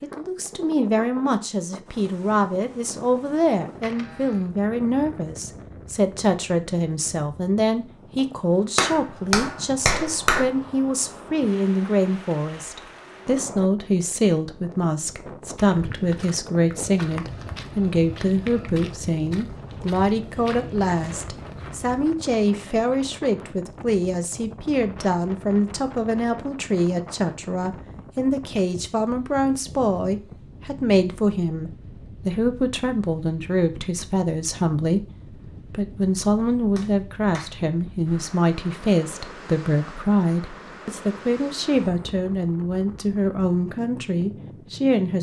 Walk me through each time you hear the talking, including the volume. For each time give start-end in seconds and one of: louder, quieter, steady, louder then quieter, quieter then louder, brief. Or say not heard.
0.0-45.1 steady.